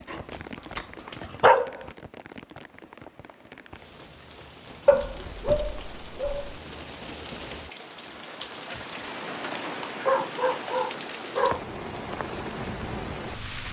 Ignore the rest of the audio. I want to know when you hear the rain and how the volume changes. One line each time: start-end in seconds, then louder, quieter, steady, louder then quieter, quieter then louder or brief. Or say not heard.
0.0-13.6 louder.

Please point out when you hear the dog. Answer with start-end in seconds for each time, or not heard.
0.1-1.9, 4.8-6.5, 10.1-11.6.